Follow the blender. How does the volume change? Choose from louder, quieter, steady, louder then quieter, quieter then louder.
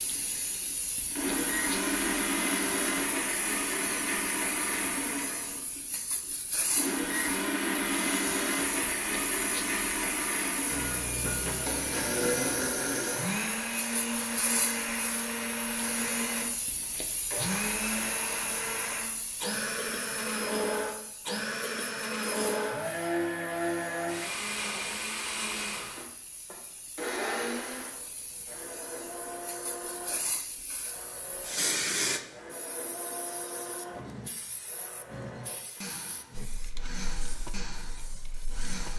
quieter.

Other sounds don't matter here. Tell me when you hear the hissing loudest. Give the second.
32 s.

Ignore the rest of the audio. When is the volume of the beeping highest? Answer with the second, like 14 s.
11 s.